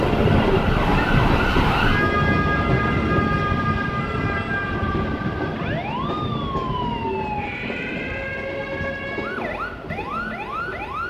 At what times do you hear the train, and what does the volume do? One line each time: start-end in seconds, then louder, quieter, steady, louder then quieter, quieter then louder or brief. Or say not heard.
0.0-11.0 quieter.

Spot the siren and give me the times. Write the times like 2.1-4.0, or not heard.
0.0-11.0.